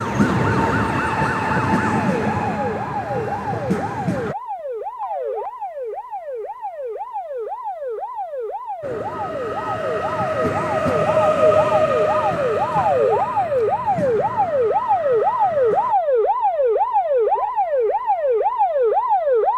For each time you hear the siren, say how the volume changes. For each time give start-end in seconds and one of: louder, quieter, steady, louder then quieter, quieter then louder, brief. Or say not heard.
0.0-19.5 louder.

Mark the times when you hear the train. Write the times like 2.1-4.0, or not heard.
0.0-4.3, 8.8-15.9.